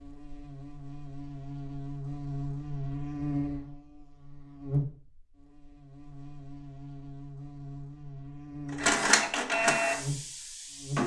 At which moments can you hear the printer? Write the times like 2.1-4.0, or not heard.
8.7-11.0.